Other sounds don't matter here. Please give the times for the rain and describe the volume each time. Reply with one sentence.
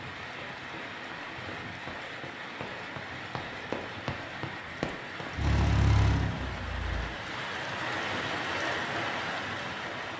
The rain can be heard from 0.0 to 10.1 s, getting louder.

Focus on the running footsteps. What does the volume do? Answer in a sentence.
The loudness of the running footsteps goes up.